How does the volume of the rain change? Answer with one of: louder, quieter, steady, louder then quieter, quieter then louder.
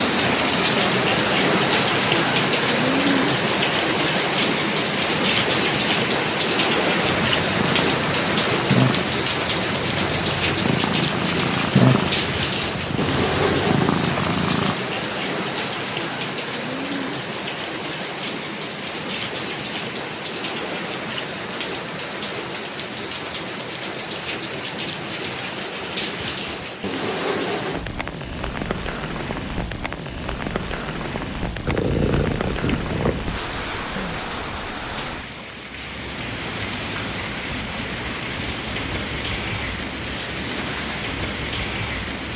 quieter.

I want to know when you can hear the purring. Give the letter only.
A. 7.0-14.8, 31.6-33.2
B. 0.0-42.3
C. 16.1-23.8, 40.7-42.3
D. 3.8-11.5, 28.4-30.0
A.